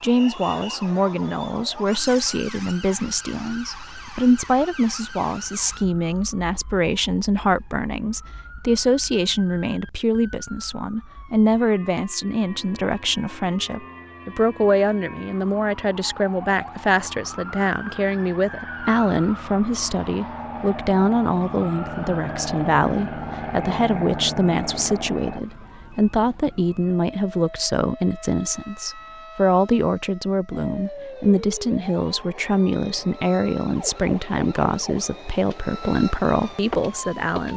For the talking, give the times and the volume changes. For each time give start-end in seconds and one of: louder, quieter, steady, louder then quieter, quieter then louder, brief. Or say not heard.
0.0-37.5 steady.